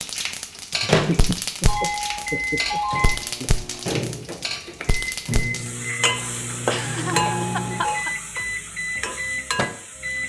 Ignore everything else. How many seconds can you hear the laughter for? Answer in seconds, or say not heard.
4 s.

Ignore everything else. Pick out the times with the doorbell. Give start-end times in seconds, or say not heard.
1.6-3.1, 7.3-8.1.